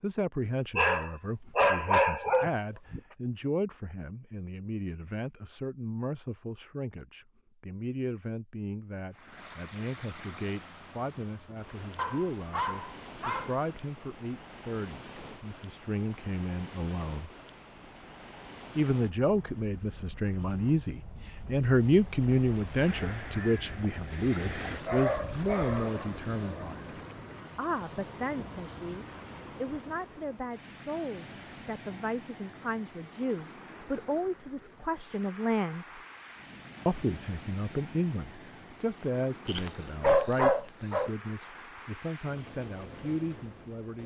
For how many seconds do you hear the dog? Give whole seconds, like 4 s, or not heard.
8 s.